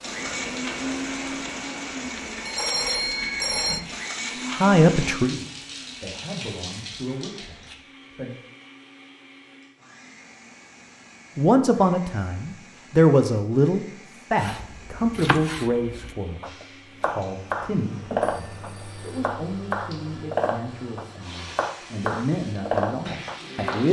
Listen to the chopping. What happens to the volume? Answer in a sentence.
The loudness of the chopping goes up.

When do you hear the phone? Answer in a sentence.
You can hear the phone from 2.5 to 3.8 s and from 18.2 to 19.2 s.